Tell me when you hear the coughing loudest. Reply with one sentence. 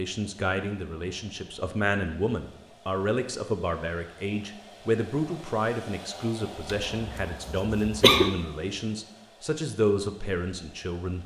The volume of the coughing peaks at 8 seconds.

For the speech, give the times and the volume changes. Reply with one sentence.
The speech can be heard from 0.0 to 11.2 s, at a steady volume.